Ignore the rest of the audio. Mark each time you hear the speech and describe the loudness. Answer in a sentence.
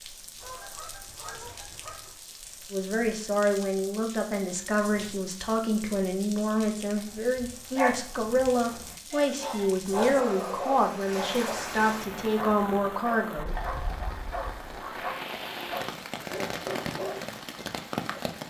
The speech can be heard from 2.7 to 13.6 s, at a steady volume.